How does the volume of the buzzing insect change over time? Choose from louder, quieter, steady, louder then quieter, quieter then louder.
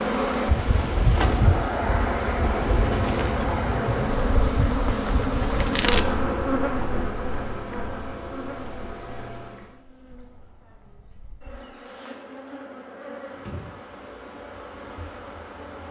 quieter then louder.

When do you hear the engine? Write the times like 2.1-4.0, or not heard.
0.0-9.8.